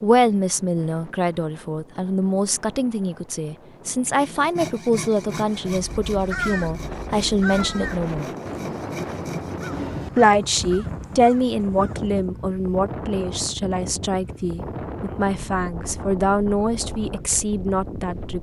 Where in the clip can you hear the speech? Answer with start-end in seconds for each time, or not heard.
0.0-8.3, 10.2-18.3.